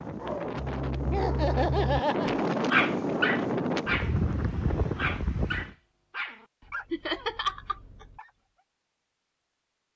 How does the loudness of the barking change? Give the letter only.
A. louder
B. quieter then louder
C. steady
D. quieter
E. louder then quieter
E.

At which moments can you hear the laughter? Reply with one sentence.
The laughter can be heard from 1.1 to 2.3 s and from 6.9 to 8.1 s.